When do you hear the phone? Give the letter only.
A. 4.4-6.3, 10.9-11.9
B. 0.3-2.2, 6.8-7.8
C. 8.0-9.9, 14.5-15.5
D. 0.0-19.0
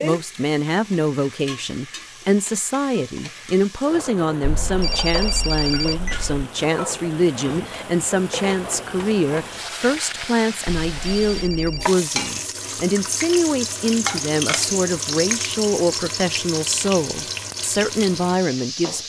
A.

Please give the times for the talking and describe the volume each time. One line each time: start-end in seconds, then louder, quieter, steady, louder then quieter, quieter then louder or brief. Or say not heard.
0.0-19.0 steady.